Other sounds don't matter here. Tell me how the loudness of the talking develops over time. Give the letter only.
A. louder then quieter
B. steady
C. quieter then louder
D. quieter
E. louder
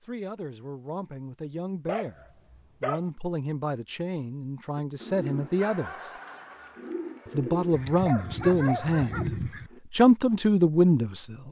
E.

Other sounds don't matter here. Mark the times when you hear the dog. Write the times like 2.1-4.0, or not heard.
1.9-3.0, 7.7-9.7.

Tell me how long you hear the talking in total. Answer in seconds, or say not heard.
10 s.